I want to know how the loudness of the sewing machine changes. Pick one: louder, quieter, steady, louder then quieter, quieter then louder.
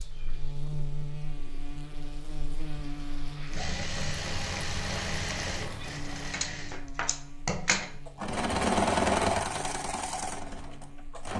louder then quieter.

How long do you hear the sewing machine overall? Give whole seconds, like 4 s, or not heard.
8 s.